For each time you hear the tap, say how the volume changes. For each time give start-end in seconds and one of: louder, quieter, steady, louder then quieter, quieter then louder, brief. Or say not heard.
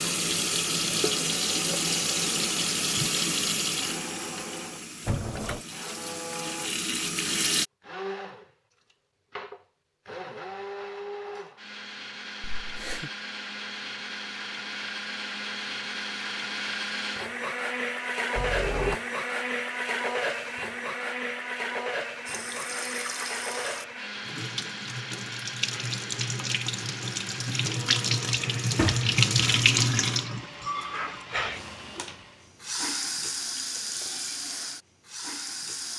0.0-7.7 quieter then louder
22.2-35.9 louder then quieter.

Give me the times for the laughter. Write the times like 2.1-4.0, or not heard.
12.4-13.1.